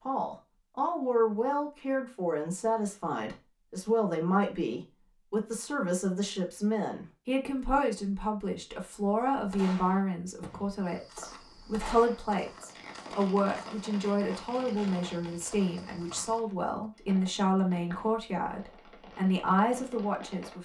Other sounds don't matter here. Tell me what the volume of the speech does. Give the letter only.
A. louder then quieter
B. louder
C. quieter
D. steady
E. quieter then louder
D.